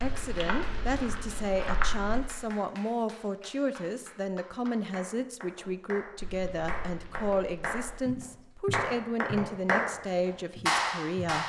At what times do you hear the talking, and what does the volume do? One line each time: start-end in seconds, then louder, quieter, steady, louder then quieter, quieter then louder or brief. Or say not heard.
0.0-11.4 steady.